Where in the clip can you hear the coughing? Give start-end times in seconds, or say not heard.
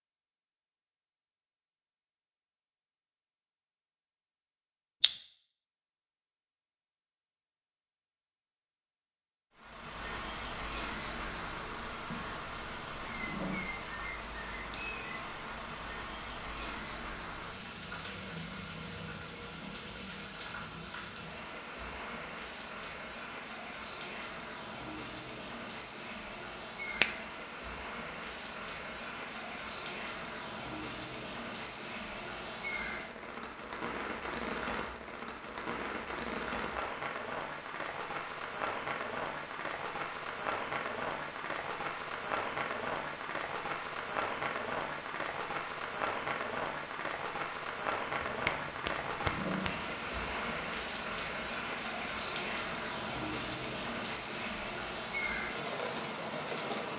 13.1-13.8, 49.1-49.9.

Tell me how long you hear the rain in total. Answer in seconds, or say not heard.
47 s.